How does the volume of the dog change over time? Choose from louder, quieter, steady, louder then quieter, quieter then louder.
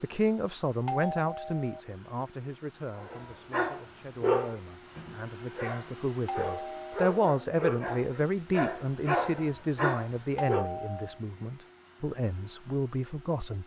quieter then louder.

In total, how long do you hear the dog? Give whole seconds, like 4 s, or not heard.
8 s.